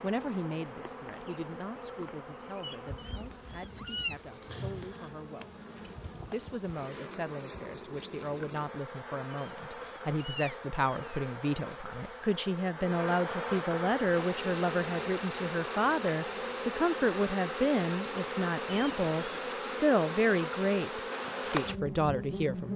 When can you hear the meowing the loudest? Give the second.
4 s.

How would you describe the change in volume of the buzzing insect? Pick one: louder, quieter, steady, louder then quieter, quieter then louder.
louder.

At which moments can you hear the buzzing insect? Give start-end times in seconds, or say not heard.
0.0-22.7.